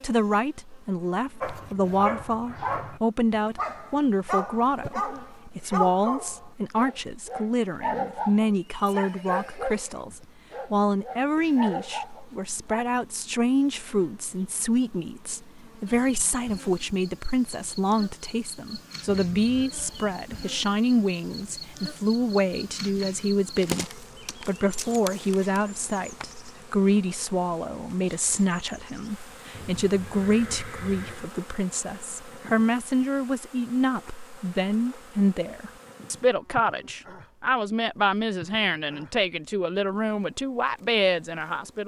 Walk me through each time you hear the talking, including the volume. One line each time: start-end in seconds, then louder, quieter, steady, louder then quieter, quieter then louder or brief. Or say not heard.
0.0-41.8 steady.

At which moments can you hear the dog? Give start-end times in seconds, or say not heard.
1.4-12.8.